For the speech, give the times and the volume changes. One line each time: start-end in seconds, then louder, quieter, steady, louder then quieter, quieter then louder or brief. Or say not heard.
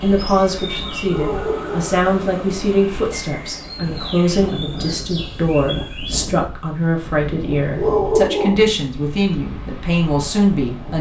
0.0-10.9 steady.